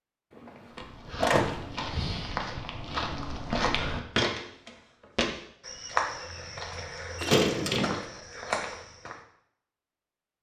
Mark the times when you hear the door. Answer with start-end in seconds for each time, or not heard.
0.3-1.6, 7.2-8.0.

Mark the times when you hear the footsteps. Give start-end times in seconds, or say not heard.
0.8-9.2.